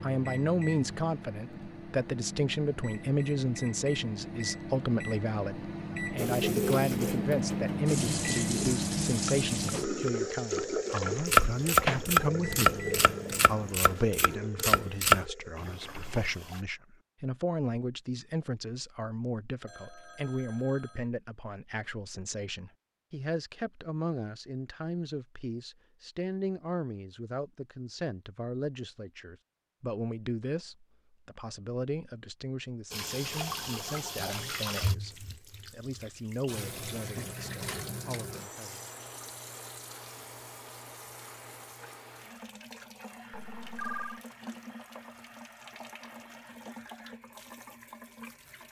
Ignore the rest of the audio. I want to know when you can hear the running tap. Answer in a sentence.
You can hear the running tap from 6.2 to 16.6 s and from 32.9 to 48.6 s.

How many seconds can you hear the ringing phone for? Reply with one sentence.
The ringing phone can be heard for 2 seconds in total.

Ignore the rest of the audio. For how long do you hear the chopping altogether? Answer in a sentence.
The chopping can be heard for 6 seconds in total.